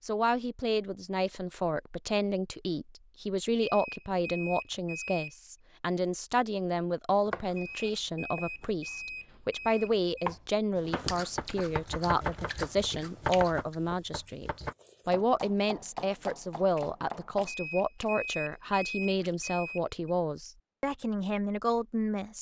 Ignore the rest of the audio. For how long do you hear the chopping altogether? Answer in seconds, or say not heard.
10 s.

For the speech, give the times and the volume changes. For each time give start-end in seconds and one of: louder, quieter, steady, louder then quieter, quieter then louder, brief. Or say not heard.
0.0-22.3 steady.